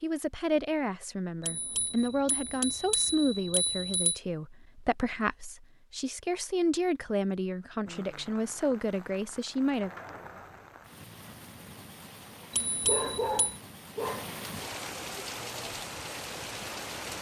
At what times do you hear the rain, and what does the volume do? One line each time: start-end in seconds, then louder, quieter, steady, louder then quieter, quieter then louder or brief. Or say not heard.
7.8-17.1 louder.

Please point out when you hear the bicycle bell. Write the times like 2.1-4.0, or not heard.
1.4-4.2, 12.5-13.6.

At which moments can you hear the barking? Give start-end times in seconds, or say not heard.
12.8-14.2.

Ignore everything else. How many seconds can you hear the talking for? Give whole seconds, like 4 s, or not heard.
10 s.